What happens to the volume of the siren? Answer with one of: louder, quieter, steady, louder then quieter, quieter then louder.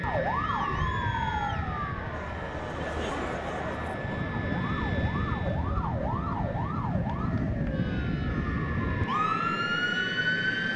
quieter then louder.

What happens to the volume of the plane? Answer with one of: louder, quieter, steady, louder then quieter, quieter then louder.
quieter then louder.